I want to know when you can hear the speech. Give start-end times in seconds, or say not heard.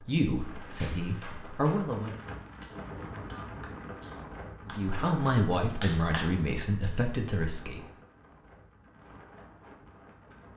0.0-2.1, 4.7-7.8.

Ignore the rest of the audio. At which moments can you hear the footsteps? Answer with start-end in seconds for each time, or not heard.
not heard.